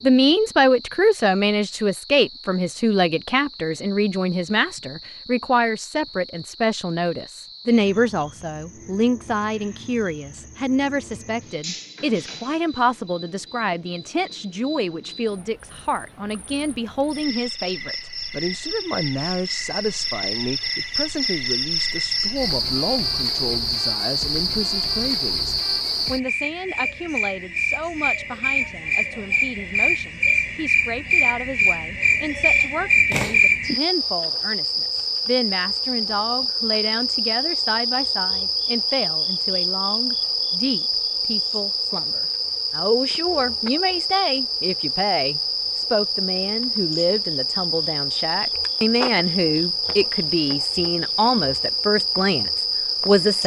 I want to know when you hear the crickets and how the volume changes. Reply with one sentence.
The crickets can be heard from 0.0 to 53.4 s, getting louder.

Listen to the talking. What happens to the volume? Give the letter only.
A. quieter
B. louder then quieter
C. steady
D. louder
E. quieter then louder
E.